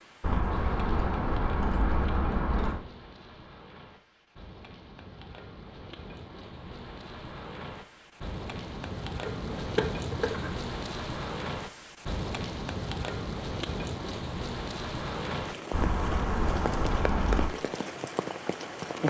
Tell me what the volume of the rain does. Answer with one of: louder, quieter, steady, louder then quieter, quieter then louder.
louder.